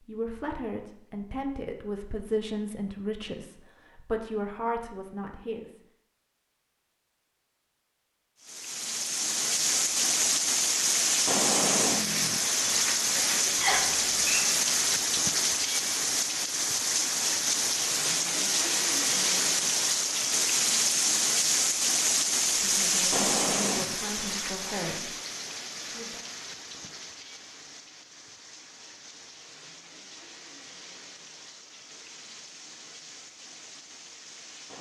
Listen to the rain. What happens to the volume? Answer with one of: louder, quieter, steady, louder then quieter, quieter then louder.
quieter.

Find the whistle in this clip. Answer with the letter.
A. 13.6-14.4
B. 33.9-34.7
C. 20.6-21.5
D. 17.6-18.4
A.